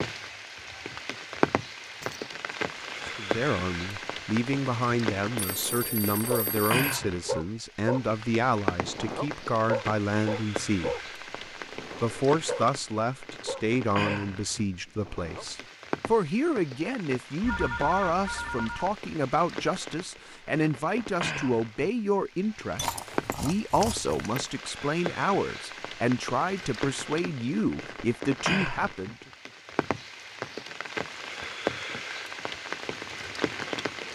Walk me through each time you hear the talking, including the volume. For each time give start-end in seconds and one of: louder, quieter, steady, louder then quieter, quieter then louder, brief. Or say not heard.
3.0-11.0 steady
12.0-29.1 steady.